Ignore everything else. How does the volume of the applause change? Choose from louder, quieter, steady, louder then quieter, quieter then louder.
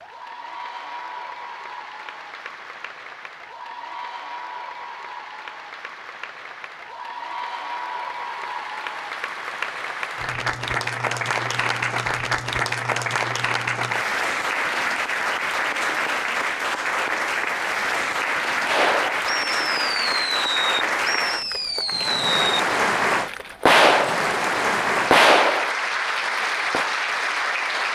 louder.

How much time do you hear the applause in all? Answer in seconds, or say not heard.
28 s.